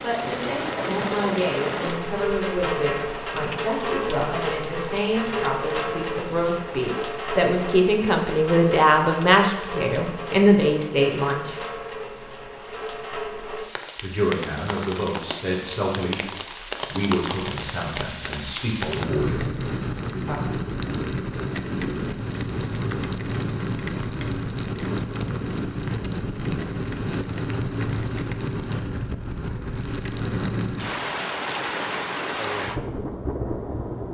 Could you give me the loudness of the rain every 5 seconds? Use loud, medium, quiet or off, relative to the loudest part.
loud, loud, medium, loud, loud, loud, loud.